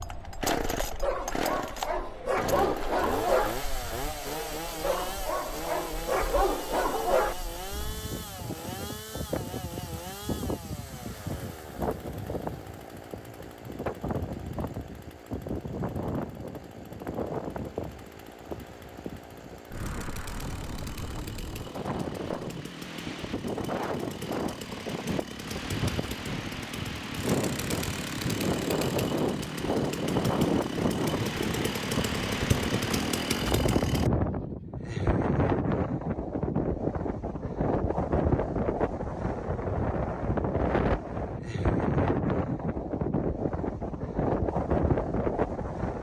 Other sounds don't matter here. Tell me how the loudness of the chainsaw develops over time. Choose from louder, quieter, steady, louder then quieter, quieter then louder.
quieter then louder.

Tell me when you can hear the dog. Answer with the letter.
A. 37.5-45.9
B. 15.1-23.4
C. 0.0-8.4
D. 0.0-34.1
C.